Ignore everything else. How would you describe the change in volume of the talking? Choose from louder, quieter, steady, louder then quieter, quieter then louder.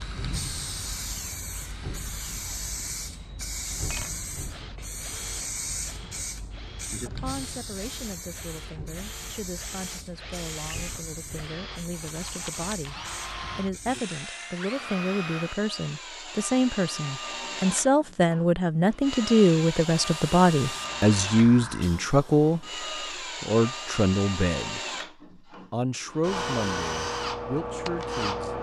louder then quieter.